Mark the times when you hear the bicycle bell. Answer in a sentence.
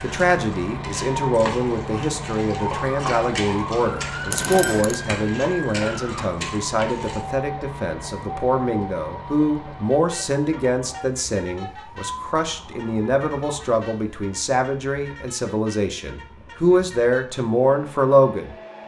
You can hear the bicycle bell from 4.3 to 5.0 s.